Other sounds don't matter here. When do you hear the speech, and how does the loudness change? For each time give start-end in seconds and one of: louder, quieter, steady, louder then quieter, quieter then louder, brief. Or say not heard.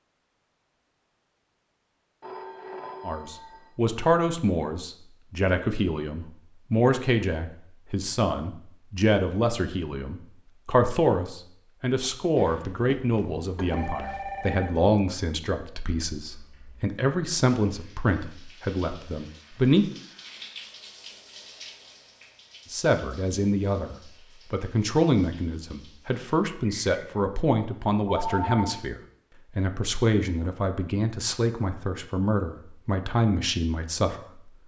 3.0-19.9 steady
22.7-34.1 steady.